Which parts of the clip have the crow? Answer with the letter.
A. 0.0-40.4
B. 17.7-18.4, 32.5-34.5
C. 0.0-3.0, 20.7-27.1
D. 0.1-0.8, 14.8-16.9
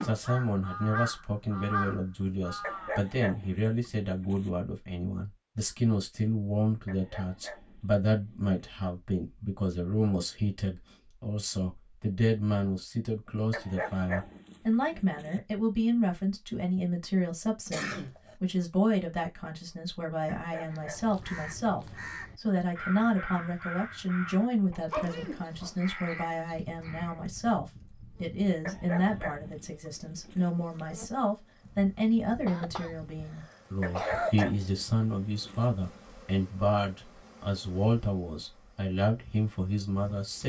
C.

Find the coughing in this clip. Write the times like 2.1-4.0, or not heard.
17.7-18.4, 32.5-34.5.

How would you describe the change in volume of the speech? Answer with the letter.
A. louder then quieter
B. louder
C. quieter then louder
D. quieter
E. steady
E.